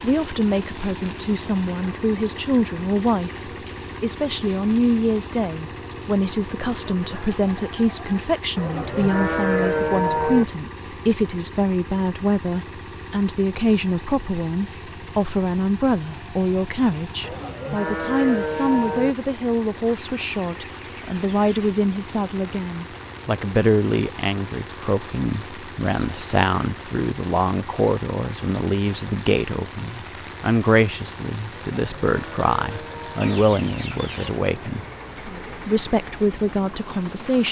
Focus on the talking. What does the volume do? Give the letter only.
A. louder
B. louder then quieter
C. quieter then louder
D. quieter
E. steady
E.